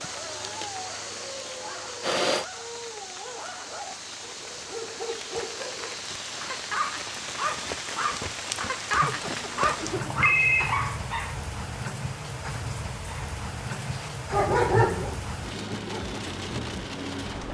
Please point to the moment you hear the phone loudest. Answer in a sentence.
The volume of the phone peaks at 10 seconds.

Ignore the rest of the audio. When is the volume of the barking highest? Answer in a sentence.
The volume of the barking peaks at 15 seconds.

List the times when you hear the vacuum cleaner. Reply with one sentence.
The vacuum cleaner can be heard from 0.0 to 2.5 s.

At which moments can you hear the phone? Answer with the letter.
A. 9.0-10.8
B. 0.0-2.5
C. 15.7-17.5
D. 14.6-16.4
A.